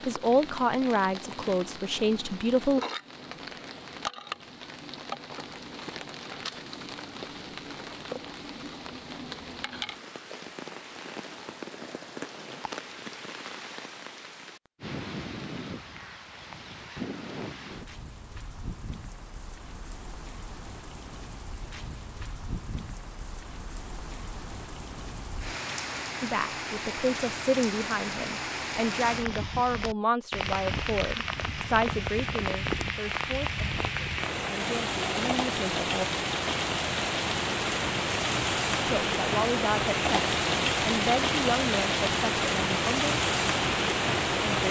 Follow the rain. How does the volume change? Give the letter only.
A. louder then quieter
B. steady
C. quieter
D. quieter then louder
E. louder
E.